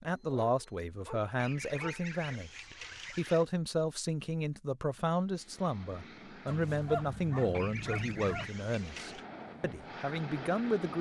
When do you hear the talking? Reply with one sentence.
The talking can be heard from 0.0 to 10.9 s.